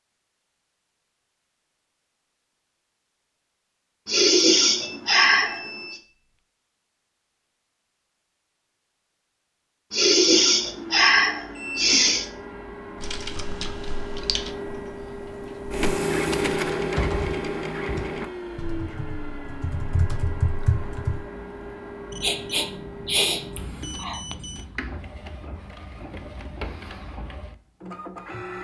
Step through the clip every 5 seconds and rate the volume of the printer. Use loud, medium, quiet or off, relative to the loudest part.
off, off, medium, loud, medium, medium.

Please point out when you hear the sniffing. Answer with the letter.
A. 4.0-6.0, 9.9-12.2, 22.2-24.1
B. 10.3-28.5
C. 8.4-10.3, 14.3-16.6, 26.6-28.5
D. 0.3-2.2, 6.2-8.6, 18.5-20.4
A.